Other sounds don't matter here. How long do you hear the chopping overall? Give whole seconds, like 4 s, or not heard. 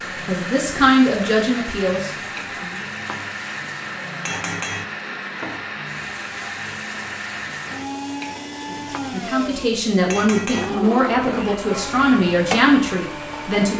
not heard.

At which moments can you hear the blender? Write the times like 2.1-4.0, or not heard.
0.0-13.7.